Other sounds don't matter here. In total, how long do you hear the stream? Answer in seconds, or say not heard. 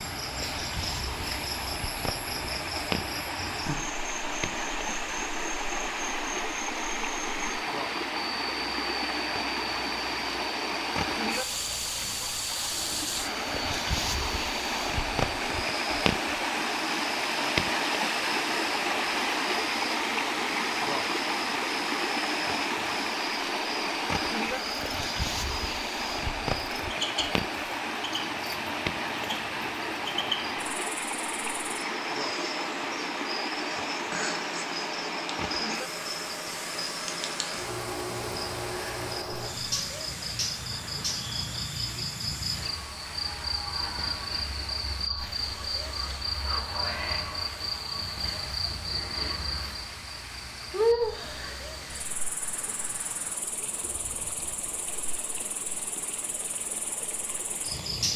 58 s.